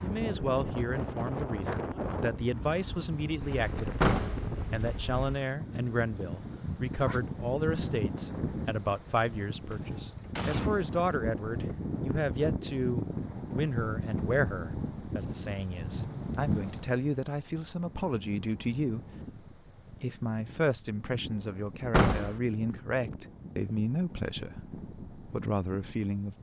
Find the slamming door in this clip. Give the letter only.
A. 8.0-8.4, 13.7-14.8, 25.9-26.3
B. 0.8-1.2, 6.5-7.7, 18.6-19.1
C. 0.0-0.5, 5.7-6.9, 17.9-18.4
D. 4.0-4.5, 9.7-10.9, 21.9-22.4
D.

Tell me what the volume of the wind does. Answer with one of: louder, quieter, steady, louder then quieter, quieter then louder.
quieter.